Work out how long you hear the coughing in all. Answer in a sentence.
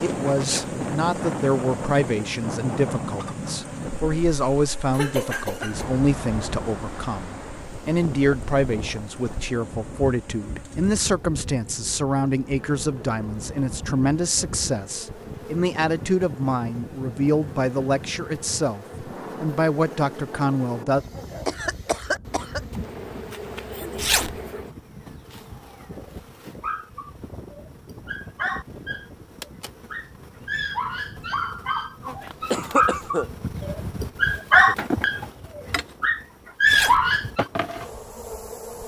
The coughing can be heard for 3 seconds in total.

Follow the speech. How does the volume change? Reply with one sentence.
The loudness of the speech stays about the same.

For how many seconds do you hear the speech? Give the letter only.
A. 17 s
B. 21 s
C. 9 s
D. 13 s
B.